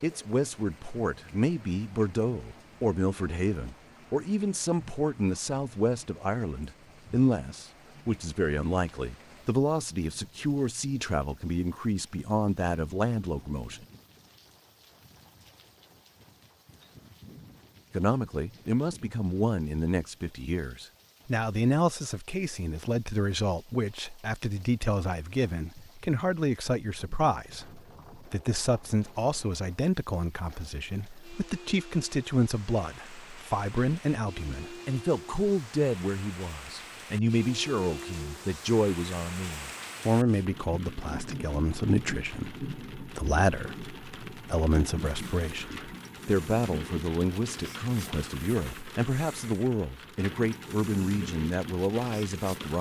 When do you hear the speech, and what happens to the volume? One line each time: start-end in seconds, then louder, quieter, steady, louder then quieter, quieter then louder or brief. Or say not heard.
0.0-13.8 steady
17.9-52.7 steady.